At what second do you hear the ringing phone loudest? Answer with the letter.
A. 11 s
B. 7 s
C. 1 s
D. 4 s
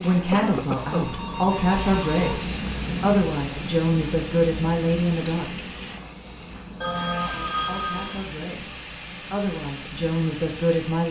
B.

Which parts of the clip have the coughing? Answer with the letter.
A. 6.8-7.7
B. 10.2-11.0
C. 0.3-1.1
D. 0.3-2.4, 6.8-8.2
C.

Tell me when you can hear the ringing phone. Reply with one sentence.
The ringing phone can be heard from 0.3 to 2.4 s and from 6.8 to 8.2 s.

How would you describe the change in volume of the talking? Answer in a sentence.
The loudness of the talking goes down, then up.